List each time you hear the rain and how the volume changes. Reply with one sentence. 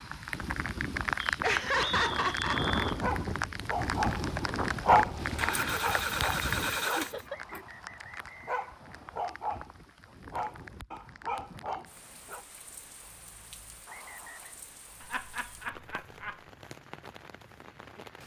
You can hear the rain from 0.0 to 18.2 s, getting quieter.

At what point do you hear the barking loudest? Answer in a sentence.
The loudest moment of the barking is at 5 seconds.